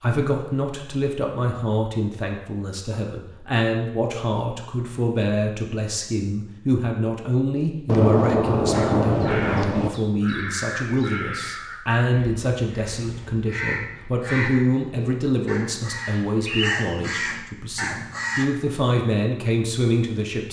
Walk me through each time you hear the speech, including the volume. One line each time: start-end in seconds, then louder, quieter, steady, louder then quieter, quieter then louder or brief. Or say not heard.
0.0-20.4 steady.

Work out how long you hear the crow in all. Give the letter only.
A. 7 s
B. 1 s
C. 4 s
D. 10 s
D.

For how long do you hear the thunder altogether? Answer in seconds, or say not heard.
2 s.